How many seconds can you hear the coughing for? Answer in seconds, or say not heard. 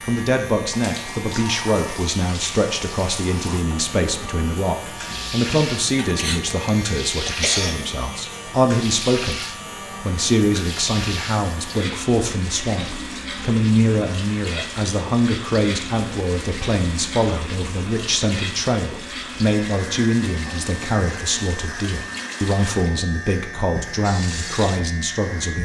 2 s.